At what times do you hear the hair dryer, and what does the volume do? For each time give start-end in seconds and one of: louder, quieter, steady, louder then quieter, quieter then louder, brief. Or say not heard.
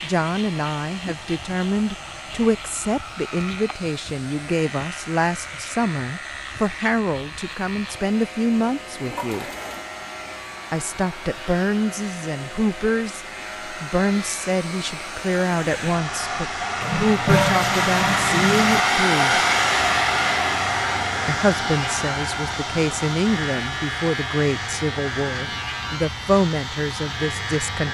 0.0-27.8 louder then quieter.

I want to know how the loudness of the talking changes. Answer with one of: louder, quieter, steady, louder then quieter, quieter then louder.
steady.